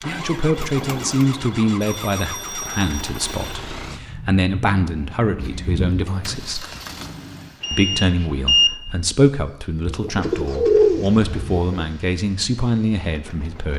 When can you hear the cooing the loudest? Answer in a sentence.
The loudest moment of the cooing is at 11 seconds.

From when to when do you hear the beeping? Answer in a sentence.
The beeping can be heard from 1.8 to 3.6 s and from 7.6 to 8.7 s.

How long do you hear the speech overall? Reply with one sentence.
The speech can be heard for 13 seconds in total.